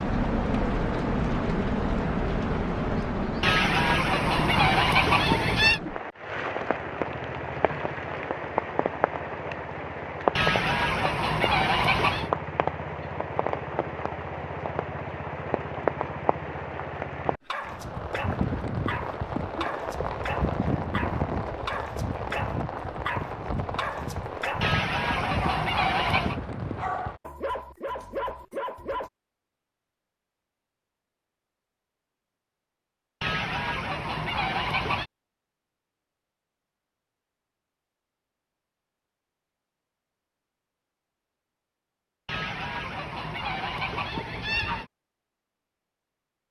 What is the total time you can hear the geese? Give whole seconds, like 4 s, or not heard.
11 s.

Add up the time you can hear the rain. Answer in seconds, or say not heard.
27 s.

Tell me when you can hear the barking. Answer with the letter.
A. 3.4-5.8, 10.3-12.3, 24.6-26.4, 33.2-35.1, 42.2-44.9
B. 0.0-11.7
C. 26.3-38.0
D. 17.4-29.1
D.